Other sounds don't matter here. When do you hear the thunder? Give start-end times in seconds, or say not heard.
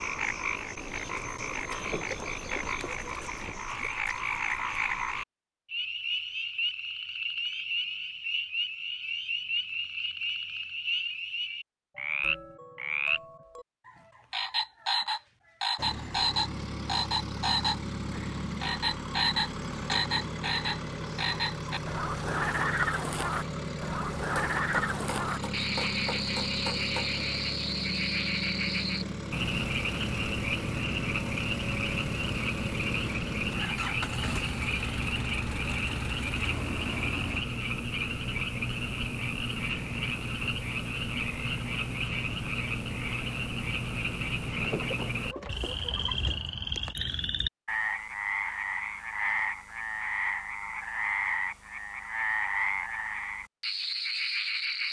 not heard.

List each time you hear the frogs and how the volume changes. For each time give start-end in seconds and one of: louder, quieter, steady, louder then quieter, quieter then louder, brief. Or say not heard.
0.0-54.8 steady.